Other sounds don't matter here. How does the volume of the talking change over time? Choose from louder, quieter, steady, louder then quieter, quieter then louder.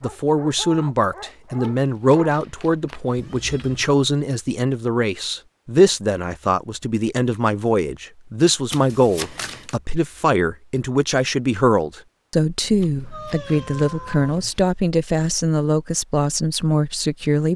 steady.